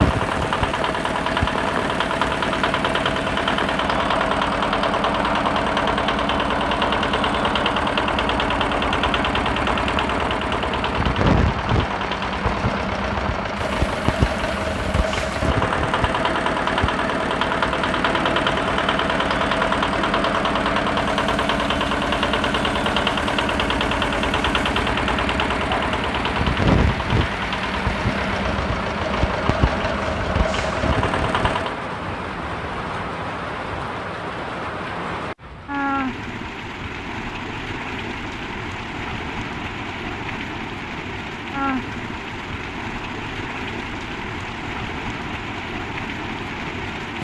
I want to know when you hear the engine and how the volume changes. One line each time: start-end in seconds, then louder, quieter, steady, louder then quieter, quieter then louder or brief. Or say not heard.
0.0-31.8 steady.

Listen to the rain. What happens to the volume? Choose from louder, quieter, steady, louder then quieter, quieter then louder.
steady.